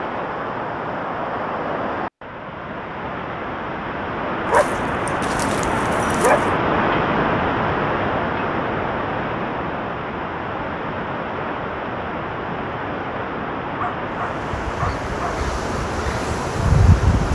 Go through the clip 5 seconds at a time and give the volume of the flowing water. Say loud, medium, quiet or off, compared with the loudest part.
medium, loud, medium, medium.